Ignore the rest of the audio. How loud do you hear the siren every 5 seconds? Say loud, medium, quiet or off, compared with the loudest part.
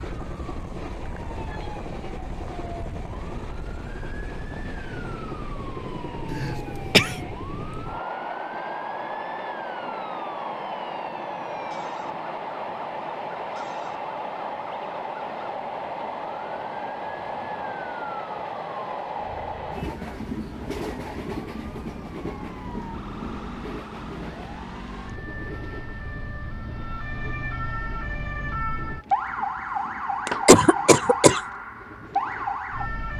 quiet, quiet, quiet, quiet, medium, loud, loud.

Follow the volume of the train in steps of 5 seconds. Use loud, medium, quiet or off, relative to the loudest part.
medium, loud, loud, loud, loud, quiet, quiet.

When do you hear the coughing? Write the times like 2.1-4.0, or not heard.
6.3-7.2, 30.2-31.4.